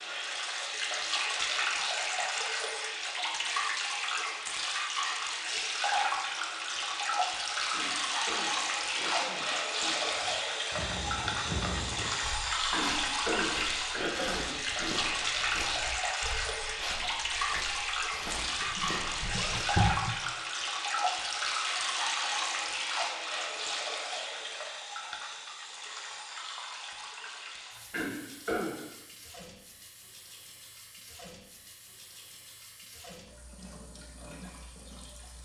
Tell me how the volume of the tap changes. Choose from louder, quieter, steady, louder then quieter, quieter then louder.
quieter.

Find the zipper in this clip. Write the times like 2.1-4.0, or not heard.
18.6-20.1.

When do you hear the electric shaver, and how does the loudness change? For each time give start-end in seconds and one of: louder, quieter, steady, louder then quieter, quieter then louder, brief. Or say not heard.
not heard.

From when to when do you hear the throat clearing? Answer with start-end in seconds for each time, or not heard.
7.7-10.0, 12.7-14.9, 27.9-28.8.